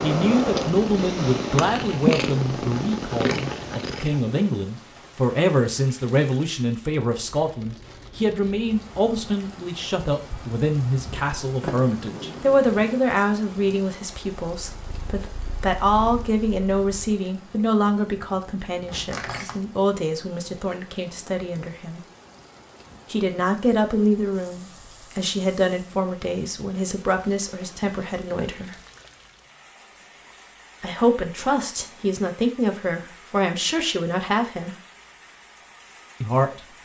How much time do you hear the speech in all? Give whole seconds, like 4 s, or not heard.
32 s.